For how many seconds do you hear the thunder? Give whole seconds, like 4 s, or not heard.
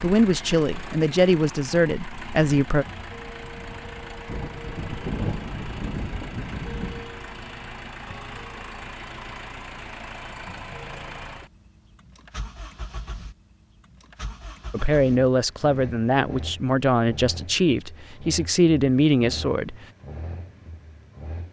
3 s.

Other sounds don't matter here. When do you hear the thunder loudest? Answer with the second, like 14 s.
5 s.